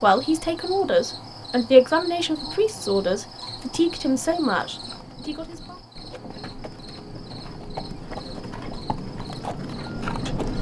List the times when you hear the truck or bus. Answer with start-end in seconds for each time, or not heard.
not heard.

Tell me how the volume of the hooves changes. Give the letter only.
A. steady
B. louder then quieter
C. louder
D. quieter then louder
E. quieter
C.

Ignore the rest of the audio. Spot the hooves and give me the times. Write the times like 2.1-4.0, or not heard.
3.5-10.5.